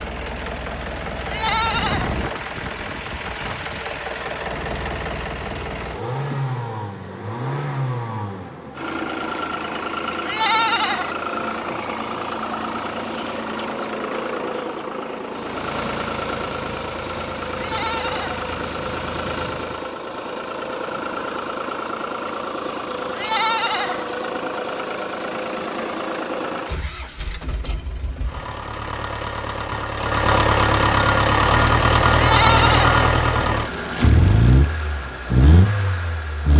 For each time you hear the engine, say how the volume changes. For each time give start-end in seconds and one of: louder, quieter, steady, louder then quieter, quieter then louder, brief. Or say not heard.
0.0-36.5 louder.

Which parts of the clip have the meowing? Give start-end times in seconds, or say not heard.
not heard.